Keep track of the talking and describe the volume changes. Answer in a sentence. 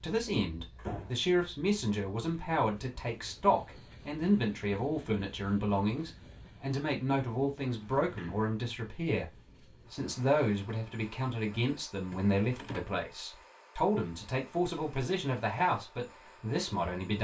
The loudness of the talking stays about the same.